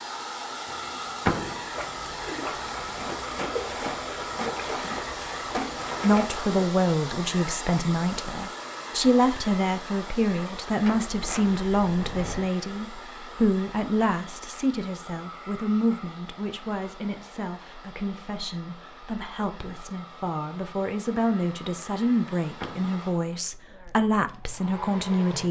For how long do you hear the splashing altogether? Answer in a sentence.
You can hear the splashing for 5 seconds altogether.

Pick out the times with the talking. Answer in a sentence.
The talking can be heard from 6.0 to 25.4 s.